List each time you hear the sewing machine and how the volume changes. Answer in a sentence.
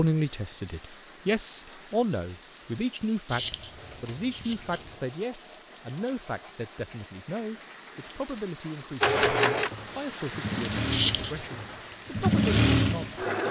You can hear the sewing machine from 9.0 to 13.4 s, getting quieter then louder.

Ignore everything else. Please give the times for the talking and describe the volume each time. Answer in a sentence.
The talking can be heard from 0.0 to 13.2 s, getting quieter.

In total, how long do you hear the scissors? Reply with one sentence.
You can hear the scissors for 2 seconds altogether.